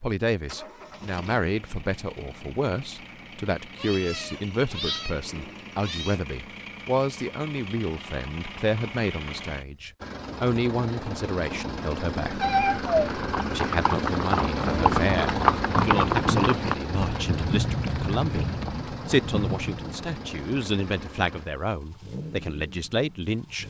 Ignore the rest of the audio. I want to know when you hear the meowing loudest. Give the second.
13 s.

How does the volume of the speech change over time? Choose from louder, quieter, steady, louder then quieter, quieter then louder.
steady.